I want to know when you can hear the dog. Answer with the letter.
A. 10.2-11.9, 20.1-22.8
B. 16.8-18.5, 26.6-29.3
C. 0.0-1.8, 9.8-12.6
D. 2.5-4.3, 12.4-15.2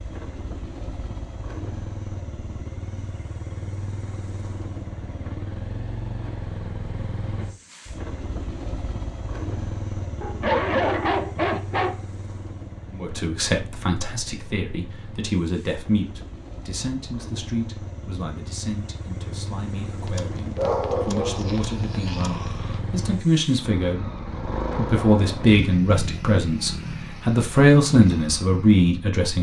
A.